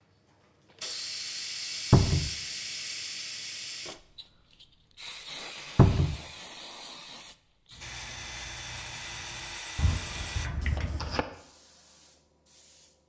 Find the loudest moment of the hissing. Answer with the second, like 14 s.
2 s.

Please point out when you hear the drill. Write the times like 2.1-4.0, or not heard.
7.8-10.5.